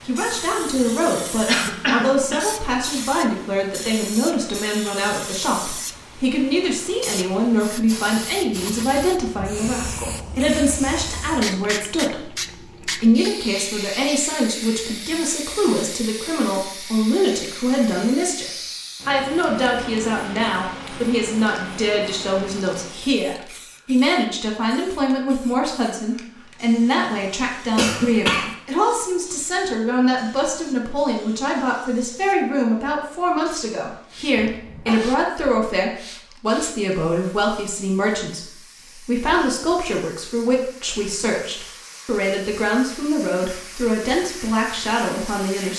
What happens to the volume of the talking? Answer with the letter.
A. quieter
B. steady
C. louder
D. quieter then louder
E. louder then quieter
B.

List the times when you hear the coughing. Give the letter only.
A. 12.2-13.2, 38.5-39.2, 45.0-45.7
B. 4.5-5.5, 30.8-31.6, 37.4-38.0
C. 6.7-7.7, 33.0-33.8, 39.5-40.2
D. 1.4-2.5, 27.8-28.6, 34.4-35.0
D.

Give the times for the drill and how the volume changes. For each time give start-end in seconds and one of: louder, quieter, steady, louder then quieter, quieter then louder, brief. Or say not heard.
not heard.